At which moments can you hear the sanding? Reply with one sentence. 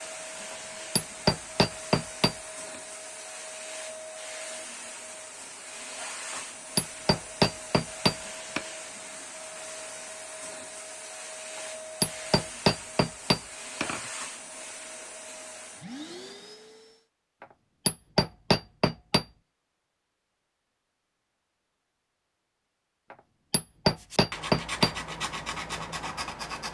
You can hear the sanding from 23.9 to 26.6 s.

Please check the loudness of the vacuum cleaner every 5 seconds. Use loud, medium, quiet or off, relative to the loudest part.
loud, loud, loud, loud, off, off.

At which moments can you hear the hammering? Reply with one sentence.
You can hear the hammering from 0.5 to 2.4 s, from 6.3 to 8.7 s, from 11.6 to 14.0 s, from 17.4 to 19.2 s and from 23.1 to 24.9 s.